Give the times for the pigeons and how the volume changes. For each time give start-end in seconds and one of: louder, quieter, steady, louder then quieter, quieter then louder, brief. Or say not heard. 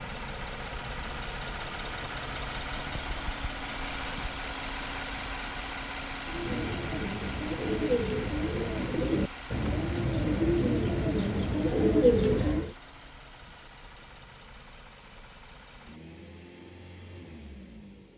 6.2-12.8 louder.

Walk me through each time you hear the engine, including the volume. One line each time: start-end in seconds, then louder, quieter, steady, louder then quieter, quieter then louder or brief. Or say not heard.
0.0-18.1 quieter.